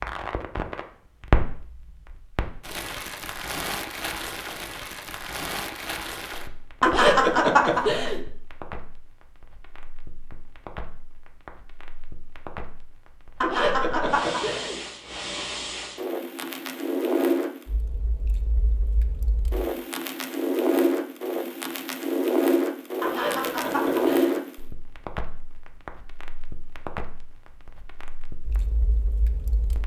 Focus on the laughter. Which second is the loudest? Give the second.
7 s.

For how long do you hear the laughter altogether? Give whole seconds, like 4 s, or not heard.
4 s.